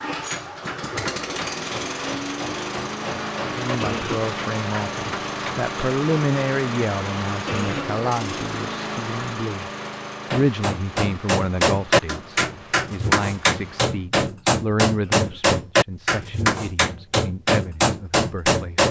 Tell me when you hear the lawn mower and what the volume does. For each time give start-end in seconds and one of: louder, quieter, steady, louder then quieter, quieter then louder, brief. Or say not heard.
0.0-14.1 quieter.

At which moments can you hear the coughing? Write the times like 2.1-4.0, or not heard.
3.8-4.2, 7.5-7.9, 15.0-15.4.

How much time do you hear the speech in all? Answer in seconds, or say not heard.
15 s.